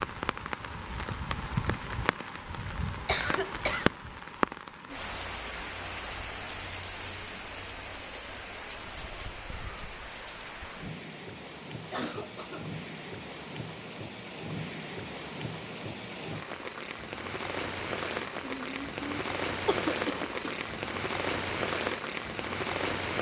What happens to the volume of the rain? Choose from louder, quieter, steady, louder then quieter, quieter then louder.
quieter then louder.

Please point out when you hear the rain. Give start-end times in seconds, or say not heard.
0.0-23.1.